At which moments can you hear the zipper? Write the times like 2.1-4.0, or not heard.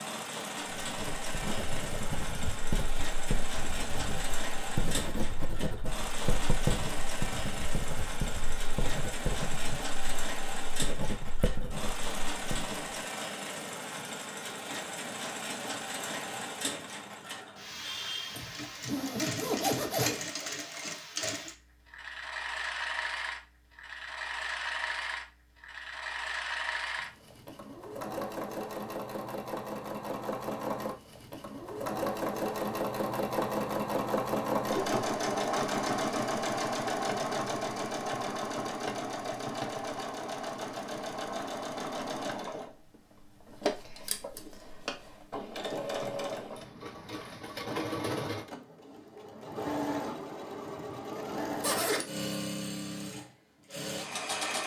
18.4-20.2, 51.6-52.3.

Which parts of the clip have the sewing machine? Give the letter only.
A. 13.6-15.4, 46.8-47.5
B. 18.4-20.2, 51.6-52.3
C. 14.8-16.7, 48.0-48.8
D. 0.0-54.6
D.